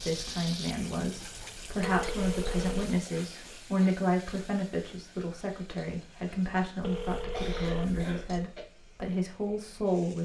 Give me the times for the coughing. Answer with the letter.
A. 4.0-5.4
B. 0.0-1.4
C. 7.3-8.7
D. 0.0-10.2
C.